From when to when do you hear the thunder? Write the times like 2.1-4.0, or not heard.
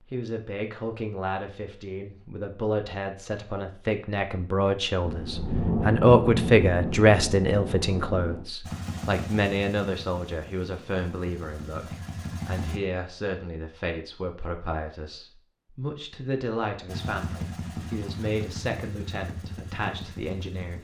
5.0-8.4.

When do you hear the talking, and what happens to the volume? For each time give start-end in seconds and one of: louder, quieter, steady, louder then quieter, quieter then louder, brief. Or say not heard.
0.0-20.7 louder then quieter.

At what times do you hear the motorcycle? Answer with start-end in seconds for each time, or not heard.
8.6-12.8, 16.9-20.7.